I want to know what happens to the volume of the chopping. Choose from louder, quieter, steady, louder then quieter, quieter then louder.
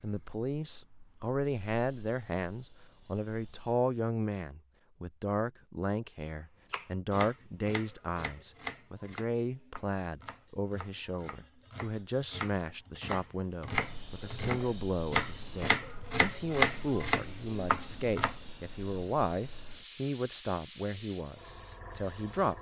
quieter then louder.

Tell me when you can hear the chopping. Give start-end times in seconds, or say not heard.
6.7-18.4.